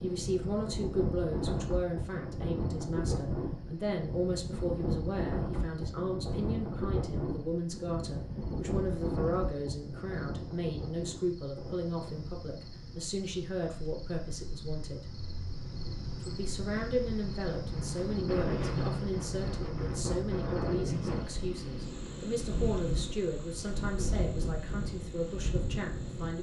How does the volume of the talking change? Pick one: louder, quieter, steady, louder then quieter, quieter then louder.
steady.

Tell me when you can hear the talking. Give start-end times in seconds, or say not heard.
0.0-15.1, 16.2-26.3.